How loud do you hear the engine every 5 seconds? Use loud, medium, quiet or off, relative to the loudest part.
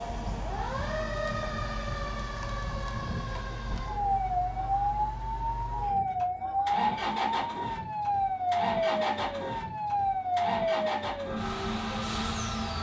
medium, loud, loud.